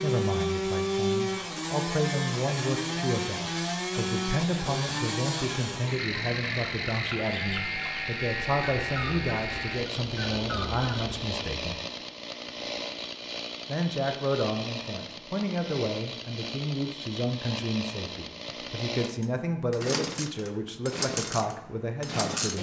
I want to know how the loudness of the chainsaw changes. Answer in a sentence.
The loudness of the chainsaw goes down.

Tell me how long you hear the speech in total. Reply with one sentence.
The speech can be heard for 21 seconds in total.